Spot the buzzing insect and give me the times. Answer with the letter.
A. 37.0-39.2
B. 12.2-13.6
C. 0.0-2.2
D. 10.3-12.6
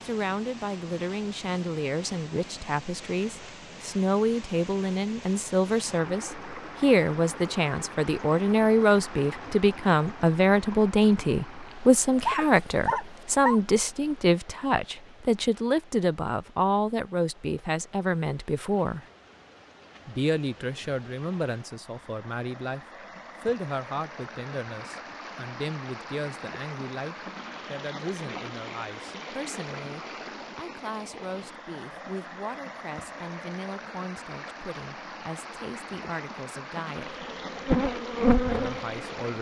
A.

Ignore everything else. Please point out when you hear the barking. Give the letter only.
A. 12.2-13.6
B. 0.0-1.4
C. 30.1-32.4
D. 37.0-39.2
A.